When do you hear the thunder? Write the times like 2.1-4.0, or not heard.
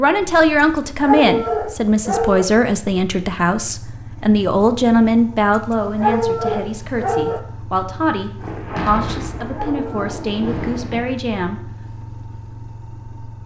8.4-11.0.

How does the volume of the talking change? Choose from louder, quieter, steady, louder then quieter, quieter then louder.
quieter.